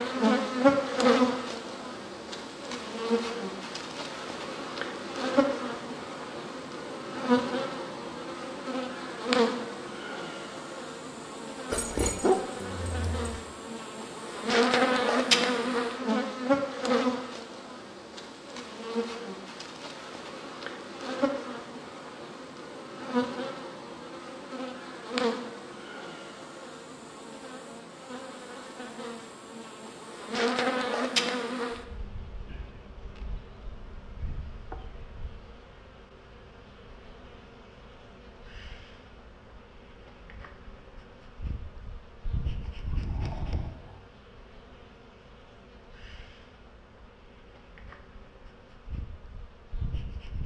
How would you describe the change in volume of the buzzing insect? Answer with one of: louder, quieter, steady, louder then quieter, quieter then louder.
quieter.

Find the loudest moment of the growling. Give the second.
12 s.